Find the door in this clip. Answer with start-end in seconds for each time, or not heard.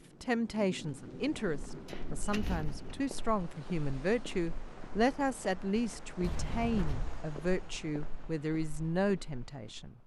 1.9-2.9, 6.2-7.2.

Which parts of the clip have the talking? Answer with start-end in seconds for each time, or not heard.
0.2-9.9.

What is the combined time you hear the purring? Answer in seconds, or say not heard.
not heard.